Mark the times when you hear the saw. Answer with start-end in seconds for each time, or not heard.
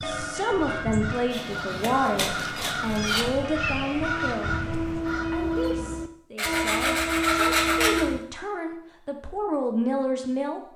1.3-3.2, 6.3-8.1.